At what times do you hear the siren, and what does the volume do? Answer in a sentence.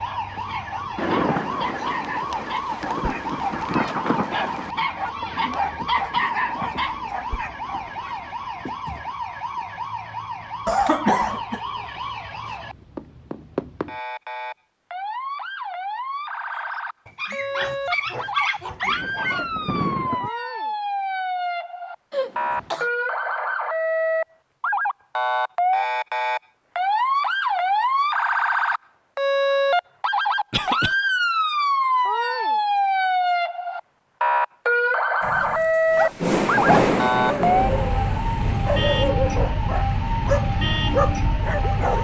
The siren can be heard from 0.0 to 42.0 s, getting louder.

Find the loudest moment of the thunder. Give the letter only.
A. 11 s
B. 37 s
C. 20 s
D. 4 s
B.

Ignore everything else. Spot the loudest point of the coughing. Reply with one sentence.
The volume of the coughing peaks at 11 seconds.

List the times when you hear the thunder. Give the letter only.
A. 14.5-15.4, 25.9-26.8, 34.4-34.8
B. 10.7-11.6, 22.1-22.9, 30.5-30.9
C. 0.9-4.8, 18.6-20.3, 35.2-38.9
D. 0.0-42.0
C.